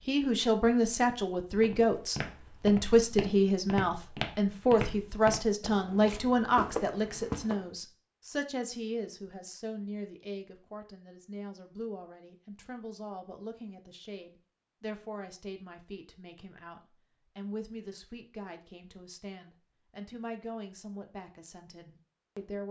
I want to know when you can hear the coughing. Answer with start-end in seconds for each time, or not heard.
not heard.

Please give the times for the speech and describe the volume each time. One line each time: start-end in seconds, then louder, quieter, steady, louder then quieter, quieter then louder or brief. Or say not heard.
0.1-22.6 quieter.